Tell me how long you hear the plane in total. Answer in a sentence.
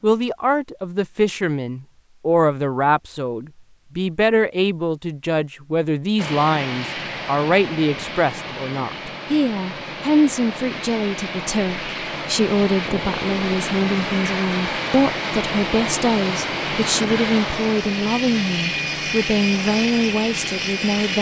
The plane can be heard for 15 seconds in total.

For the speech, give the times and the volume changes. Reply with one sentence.
You can hear the speech from 0.0 to 21.1 s, at a steady volume.